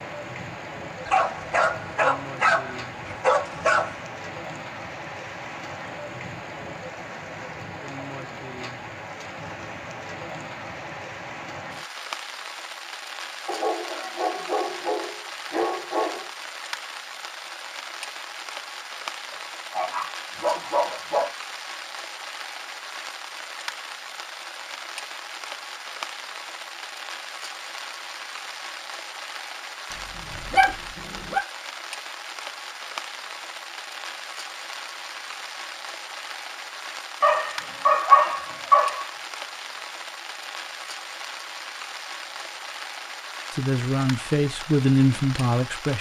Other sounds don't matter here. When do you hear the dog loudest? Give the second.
38 s.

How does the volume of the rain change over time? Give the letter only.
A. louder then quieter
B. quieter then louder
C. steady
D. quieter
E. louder
C.